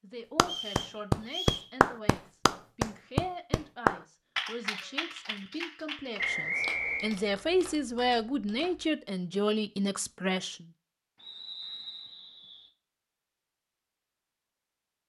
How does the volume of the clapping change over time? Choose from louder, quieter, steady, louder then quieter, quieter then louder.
quieter.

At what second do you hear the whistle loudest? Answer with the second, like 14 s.
7 s.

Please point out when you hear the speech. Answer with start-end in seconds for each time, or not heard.
0.0-10.7.